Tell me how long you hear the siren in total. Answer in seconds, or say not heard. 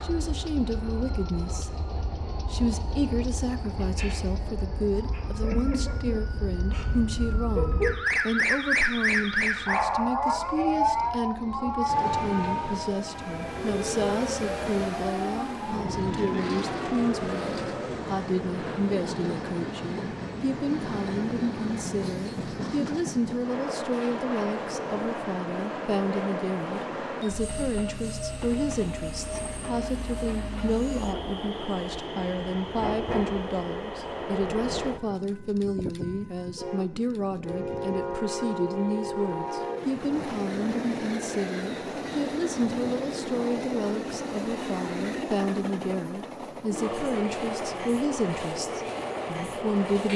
18 s.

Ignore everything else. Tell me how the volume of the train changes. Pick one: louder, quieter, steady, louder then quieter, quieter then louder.
louder.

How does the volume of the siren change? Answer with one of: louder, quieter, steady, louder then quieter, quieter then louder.
louder then quieter.